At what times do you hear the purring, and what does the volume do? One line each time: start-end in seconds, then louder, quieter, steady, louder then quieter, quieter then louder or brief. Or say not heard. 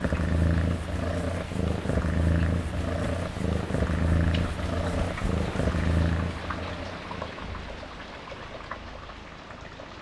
0.0-9.9 quieter.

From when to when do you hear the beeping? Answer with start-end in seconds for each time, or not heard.
not heard.